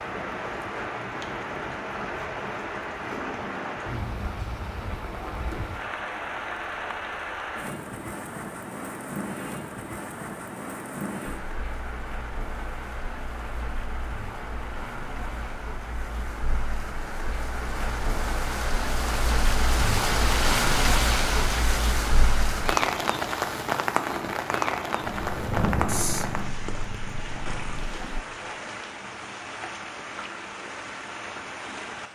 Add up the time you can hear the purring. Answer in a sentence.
You can hear the purring for 3 seconds altogether.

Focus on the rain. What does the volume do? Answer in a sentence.
The volume of the rain goes up, then down.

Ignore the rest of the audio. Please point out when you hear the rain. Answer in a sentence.
The rain can be heard from 0.0 to 32.0 s.